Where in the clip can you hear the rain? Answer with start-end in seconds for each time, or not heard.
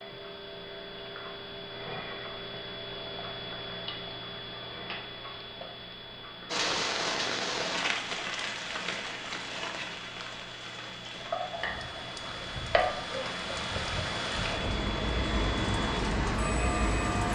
6.5-17.2.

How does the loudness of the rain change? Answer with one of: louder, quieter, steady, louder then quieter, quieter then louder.
quieter then louder.